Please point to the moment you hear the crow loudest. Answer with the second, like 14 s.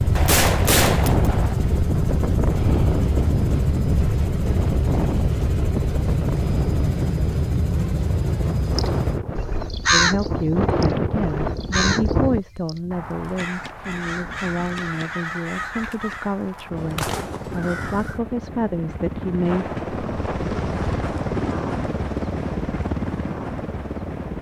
10 s.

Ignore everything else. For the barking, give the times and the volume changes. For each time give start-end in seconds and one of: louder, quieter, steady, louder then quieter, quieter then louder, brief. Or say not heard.
not heard.